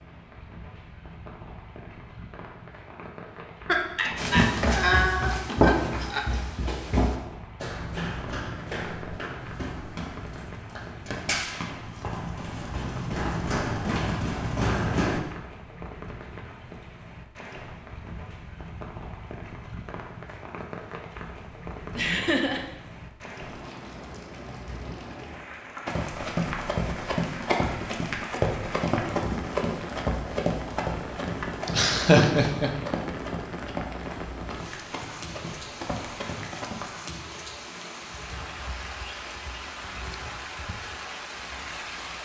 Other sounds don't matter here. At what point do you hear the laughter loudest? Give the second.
32 s.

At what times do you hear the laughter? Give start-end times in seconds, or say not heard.
3.6-6.2, 21.9-22.6, 31.6-32.7.